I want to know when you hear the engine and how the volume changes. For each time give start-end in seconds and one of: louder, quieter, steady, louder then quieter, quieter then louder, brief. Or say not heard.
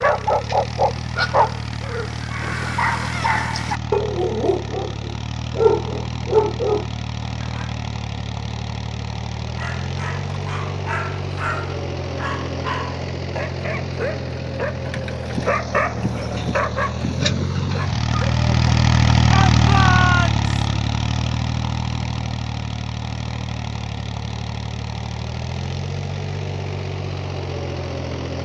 0.0-28.4 louder then quieter.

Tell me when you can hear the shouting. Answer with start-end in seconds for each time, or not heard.
19.2-20.4.